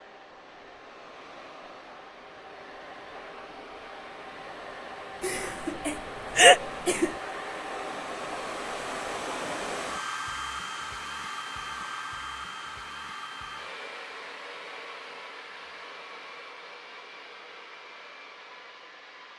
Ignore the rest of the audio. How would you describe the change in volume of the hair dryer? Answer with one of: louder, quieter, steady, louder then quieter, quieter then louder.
louder then quieter.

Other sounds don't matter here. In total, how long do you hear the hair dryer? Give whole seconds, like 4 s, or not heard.
19 s.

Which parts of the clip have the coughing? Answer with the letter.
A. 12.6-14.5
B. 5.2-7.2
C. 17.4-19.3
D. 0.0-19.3
B.